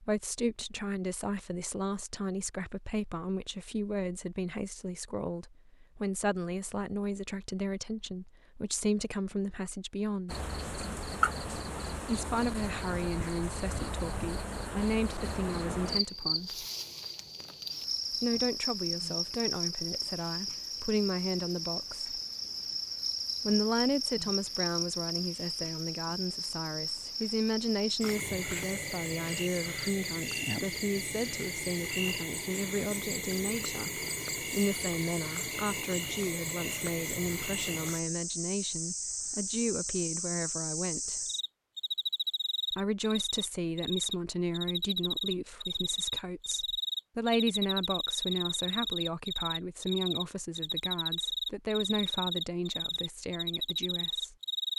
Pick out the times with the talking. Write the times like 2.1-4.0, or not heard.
0.0-10.4, 12.1-16.6, 18.1-22.2, 23.4-41.2, 42.7-54.4.